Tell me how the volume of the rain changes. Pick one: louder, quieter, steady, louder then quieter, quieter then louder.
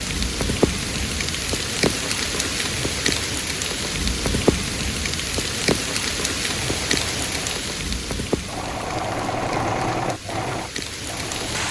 quieter.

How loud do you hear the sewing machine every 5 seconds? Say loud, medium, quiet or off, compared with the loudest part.
off, loud, loud.